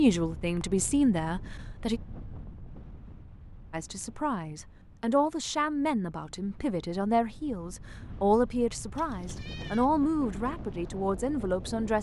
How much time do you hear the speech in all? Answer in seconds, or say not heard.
10 s.